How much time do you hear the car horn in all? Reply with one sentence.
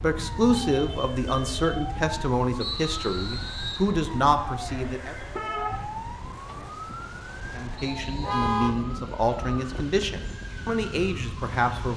The car horn can be heard for 3 seconds in total.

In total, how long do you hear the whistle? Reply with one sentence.
The whistle can be heard for 2 seconds in total.